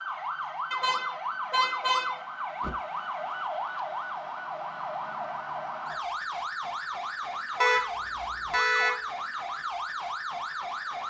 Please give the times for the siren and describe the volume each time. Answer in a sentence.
You can hear the siren from 0.0 to 11.0 s, at a steady volume.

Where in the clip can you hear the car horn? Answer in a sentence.
You can hear the car horn from 0.7 to 2.7 s and from 7.6 to 9.0 s.